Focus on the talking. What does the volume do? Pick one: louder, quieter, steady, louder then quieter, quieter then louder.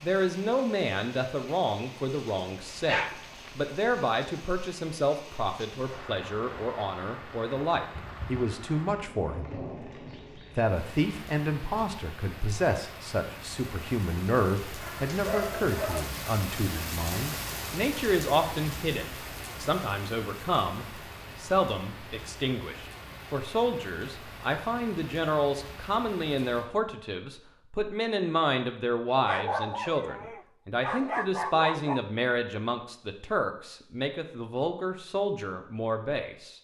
steady.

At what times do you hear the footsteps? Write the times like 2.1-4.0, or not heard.
not heard.